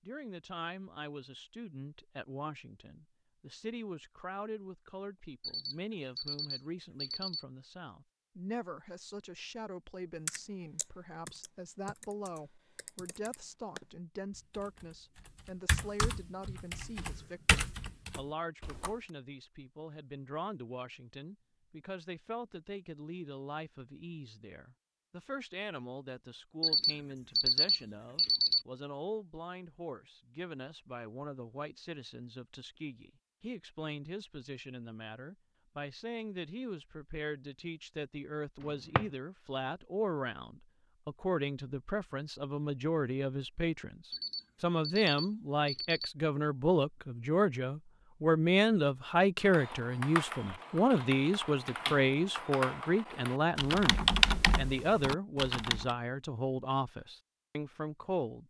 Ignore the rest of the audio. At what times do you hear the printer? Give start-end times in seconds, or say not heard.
not heard.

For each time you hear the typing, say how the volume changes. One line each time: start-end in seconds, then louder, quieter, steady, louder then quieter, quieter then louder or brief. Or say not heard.
10.2-19.1 quieter then louder
49.4-56.0 louder then quieter.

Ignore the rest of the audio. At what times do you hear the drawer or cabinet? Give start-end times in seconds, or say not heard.
38.6-39.1.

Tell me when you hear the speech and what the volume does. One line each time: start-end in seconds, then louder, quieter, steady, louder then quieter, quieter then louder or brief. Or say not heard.
0.1-58.4 louder.